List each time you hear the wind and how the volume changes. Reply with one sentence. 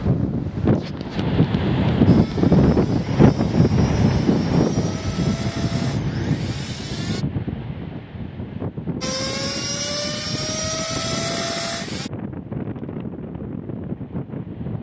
You can hear the wind from 0.0 to 14.7 s, getting quieter.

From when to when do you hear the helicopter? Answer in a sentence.
You can hear the helicopter from 2.0 to 7.2 s and from 9.0 to 12.1 s.